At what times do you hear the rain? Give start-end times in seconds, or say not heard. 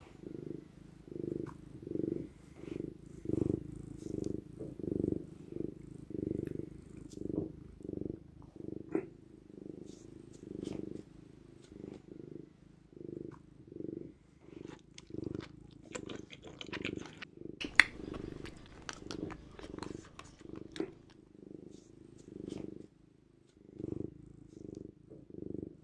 not heard.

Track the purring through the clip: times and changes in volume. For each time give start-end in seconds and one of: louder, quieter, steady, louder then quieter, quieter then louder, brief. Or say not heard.
0.0-25.7 quieter.